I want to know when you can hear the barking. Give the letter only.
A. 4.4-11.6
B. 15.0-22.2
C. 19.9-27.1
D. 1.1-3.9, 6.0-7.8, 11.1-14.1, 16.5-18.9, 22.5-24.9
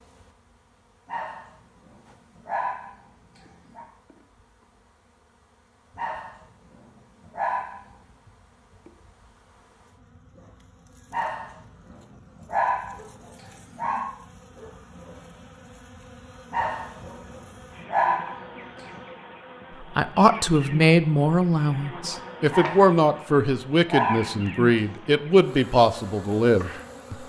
D.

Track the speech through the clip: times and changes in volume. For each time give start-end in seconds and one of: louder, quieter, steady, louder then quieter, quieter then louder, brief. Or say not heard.
19.9-27.1 steady.